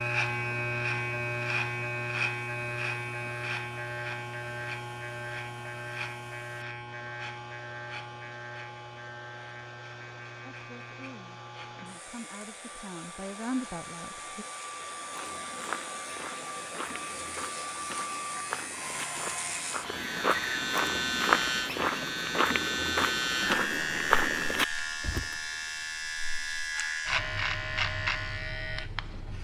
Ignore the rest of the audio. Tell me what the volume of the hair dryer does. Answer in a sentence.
The volume of the hair dryer goes up.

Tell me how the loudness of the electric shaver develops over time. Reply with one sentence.
The loudness of the electric shaver goes down, then up.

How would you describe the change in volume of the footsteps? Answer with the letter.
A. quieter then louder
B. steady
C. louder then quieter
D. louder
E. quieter
D.